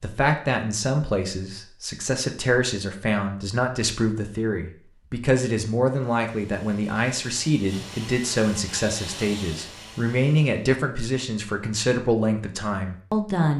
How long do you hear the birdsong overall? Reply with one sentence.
You can't hear the birdsong here.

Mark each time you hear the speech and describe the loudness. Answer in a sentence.
You can hear the speech from 0.0 to 13.5 s, at a steady volume.